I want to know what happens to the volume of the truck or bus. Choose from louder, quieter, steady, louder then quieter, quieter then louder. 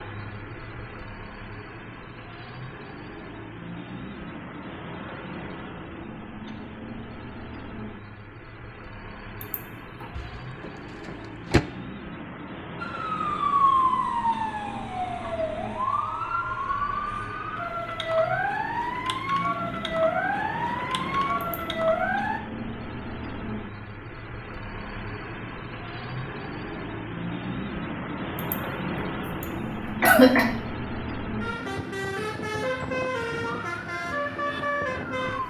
louder.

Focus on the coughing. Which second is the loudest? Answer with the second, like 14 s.
30 s.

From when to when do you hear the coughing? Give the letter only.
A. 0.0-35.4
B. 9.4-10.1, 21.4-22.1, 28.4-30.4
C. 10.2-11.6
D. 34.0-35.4
B.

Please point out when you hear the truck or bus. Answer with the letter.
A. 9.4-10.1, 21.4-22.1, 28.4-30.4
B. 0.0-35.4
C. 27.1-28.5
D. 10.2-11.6
B.